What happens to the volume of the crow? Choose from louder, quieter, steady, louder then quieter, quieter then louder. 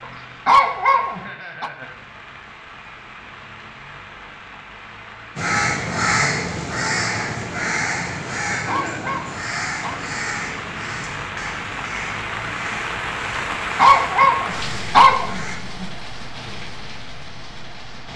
quieter.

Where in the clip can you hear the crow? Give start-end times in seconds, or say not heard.
5.3-15.6.